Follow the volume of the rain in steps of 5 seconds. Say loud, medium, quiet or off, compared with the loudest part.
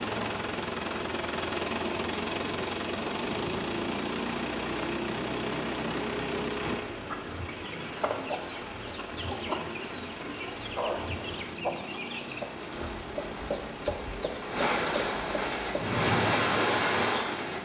quiet, quiet, medium, loud.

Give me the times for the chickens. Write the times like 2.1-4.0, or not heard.
7.0-16.0.